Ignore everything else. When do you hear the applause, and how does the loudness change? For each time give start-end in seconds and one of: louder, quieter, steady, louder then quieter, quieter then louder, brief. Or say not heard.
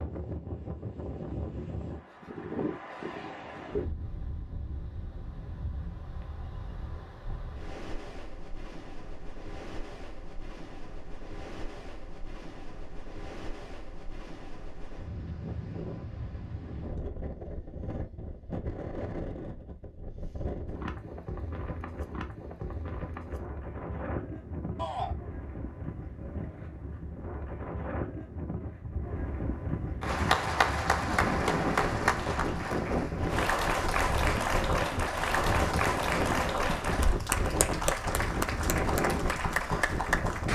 30.0-40.5 steady.